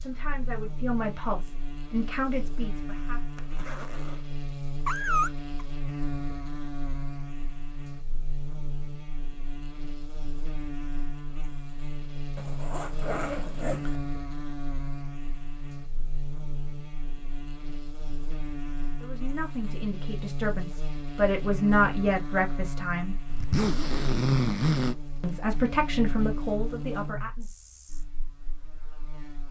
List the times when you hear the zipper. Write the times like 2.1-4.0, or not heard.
3.4-4.2, 12.3-14.0, 23.2-24.9.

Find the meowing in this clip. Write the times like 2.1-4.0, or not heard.
4.8-5.7.